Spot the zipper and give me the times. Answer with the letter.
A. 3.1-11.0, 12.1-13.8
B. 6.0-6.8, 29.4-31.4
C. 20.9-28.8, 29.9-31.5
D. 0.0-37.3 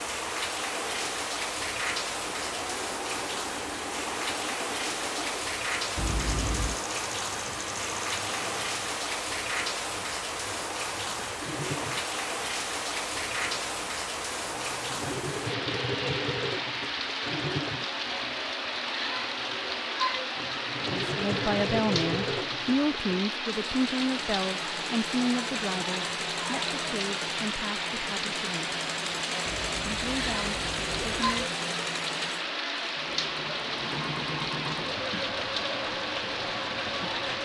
B.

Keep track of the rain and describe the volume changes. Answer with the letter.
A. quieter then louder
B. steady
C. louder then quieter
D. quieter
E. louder
B.